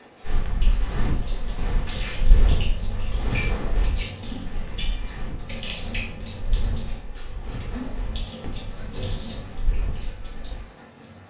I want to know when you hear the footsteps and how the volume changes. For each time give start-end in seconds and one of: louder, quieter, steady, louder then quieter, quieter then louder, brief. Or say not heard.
0.2-10.6 quieter.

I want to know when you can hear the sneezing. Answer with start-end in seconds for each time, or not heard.
not heard.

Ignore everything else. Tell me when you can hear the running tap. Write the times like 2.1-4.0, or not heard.
0.0-11.2.